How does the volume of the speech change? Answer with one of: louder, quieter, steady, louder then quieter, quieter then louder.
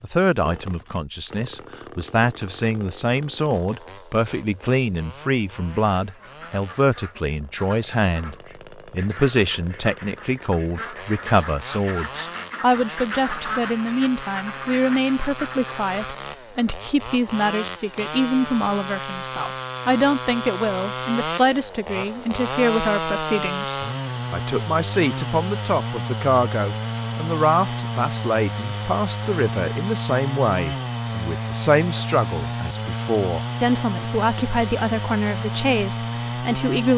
steady.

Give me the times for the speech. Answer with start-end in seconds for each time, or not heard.
0.0-36.9.